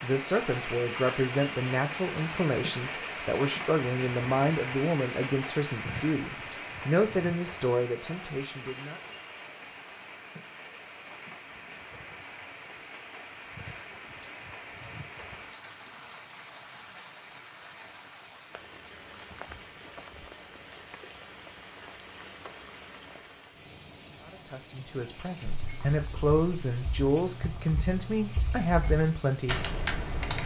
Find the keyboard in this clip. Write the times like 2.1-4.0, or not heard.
25.4-30.4.